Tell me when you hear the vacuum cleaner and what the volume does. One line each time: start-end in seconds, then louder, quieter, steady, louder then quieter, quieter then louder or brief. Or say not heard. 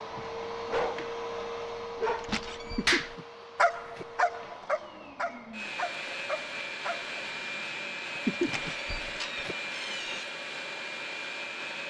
0.0-11.8 quieter then louder.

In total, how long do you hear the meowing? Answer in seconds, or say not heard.
3 s.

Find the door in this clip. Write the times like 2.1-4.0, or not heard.
2.2-2.9, 8.4-10.2.